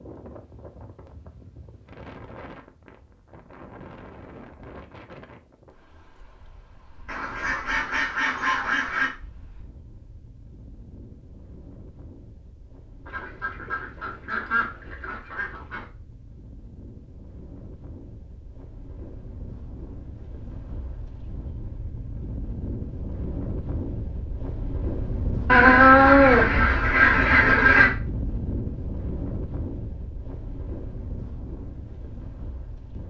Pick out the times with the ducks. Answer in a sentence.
You can hear the ducks from 7.0 to 9.1 s, from 13.1 to 15.8 s and from 25.4 to 27.9 s.